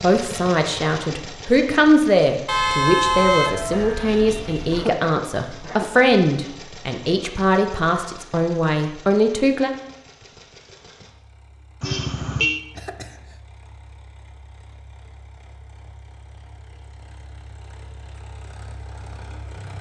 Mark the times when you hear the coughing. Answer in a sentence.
The coughing can be heard from 4.7 to 5.9 s and from 12.8 to 13.4 s.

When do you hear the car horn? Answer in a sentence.
The car horn can be heard from 2.5 to 4.9 s and from 11.8 to 12.6 s.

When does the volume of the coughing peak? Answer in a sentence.
The loudest moment of the coughing is at 5 seconds.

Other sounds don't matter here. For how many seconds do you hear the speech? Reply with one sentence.
You can hear the speech for 10 seconds altogether.